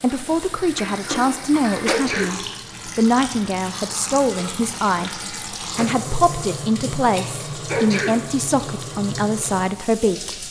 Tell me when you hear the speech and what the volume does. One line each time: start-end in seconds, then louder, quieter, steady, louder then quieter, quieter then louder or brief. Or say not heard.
0.0-10.4 steady.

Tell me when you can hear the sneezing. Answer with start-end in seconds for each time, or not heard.
1.9-2.4, 7.7-8.2.